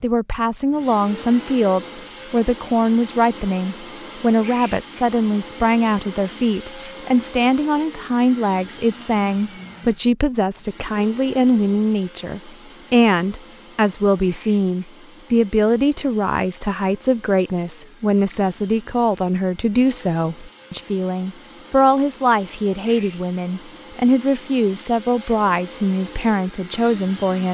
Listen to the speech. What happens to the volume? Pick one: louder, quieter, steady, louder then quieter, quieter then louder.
steady.